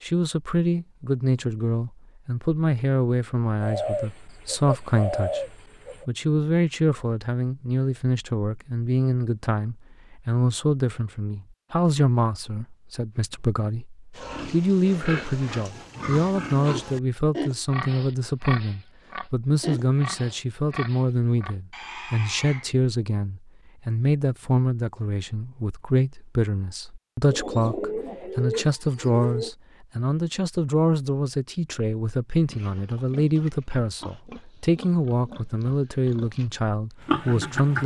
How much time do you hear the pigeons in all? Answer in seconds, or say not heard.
5 s.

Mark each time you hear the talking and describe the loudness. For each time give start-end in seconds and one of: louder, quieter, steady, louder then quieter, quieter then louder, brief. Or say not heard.
0.0-37.8 steady.